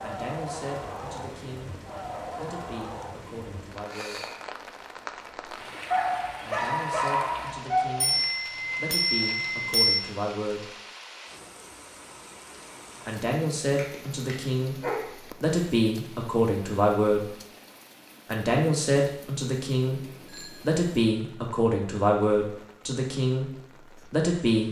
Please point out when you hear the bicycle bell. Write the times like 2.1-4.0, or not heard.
8.0-10.0, 20.0-20.8.